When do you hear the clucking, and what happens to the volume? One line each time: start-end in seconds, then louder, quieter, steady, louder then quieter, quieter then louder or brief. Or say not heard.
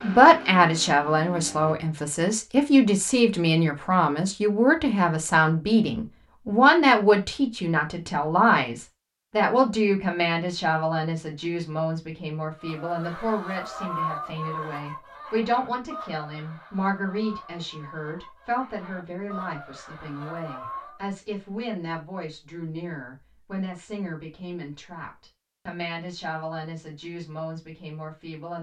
12.6-21.0 quieter then louder.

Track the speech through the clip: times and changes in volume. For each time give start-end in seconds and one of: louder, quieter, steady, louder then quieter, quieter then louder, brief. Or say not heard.
0.0-28.5 quieter.